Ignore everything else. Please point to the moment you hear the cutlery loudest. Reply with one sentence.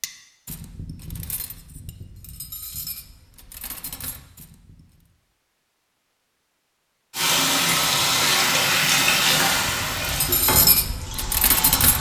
The volume of the cutlery peaks at 11 seconds.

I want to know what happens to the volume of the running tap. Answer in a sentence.
The volume of the running tap goes down.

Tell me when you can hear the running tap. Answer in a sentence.
You can hear the running tap from 7.1 to 11.9 s.